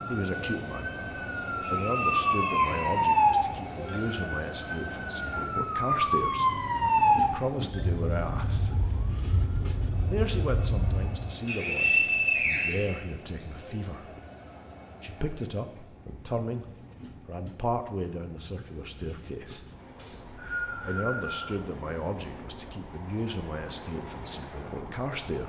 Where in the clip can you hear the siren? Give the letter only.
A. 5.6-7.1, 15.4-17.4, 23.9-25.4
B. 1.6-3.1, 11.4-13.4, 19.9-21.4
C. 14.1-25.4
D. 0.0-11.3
D.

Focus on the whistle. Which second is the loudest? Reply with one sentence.
The loudest moment of the whistle is at 12 seconds.